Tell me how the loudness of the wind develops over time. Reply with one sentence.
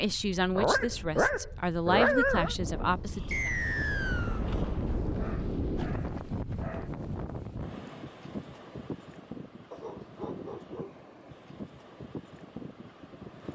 The volume of the wind goes up, then down.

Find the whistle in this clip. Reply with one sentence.
You can hear the whistle from 3.3 to 4.4 s.